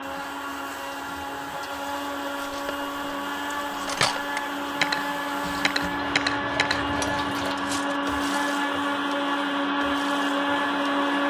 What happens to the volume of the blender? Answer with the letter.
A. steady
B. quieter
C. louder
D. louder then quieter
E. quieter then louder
C.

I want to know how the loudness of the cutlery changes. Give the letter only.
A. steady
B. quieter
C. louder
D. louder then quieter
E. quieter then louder
D.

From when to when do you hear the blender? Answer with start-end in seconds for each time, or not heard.
0.0-11.2.